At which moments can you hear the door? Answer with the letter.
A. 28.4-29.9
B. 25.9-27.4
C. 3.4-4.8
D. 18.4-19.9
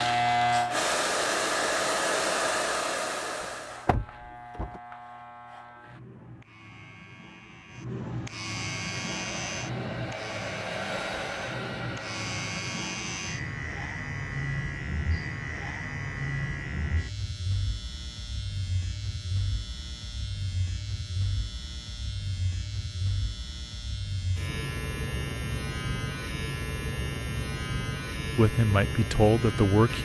C.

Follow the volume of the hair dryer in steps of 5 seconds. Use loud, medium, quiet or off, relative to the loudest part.
loud, quiet, medium, off, off, off.